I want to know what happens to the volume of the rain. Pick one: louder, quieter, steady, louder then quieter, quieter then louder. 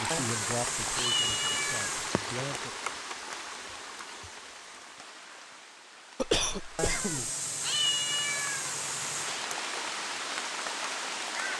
quieter then louder.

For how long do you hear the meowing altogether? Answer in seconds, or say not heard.
5 s.